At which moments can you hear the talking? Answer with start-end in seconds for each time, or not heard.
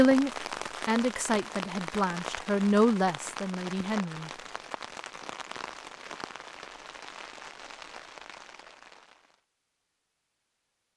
0.0-4.3.